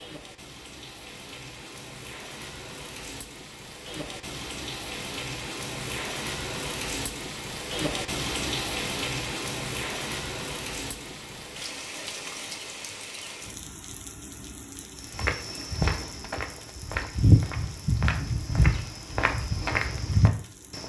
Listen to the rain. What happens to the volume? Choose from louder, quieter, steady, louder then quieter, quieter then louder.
louder then quieter.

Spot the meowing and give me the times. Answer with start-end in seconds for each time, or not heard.
not heard.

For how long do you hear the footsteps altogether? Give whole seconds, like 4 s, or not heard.
6 s.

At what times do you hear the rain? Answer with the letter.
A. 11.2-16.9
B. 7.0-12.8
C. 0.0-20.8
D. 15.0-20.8
C.